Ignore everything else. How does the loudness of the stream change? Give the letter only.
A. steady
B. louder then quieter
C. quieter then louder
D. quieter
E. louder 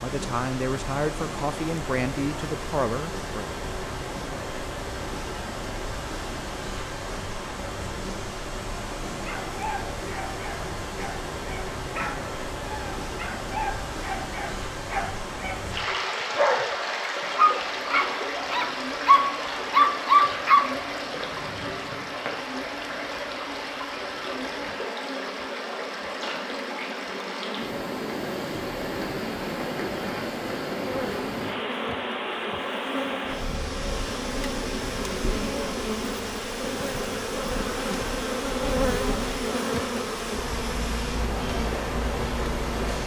A.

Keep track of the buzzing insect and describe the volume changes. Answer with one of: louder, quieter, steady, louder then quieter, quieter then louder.
louder.